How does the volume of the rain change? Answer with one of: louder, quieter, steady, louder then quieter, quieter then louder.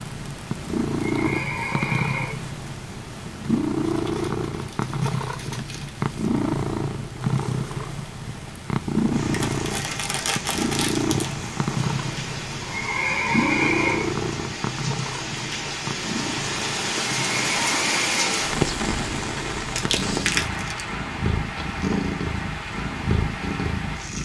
louder then quieter.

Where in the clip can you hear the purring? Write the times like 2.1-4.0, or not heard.
0.0-24.2.